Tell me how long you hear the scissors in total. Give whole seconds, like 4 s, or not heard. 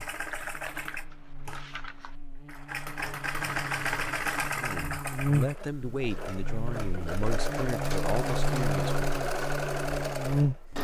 2 s.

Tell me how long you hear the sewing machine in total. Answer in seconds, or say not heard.
11 s.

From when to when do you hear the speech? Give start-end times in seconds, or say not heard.
4.5-8.9.